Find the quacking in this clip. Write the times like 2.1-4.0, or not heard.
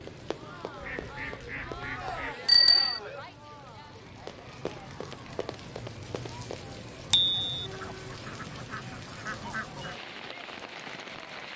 0.8-2.4, 7.7-10.0.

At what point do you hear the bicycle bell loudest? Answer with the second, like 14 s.
3 s.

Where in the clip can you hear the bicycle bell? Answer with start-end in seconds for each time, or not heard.
2.5-3.0, 7.1-7.7.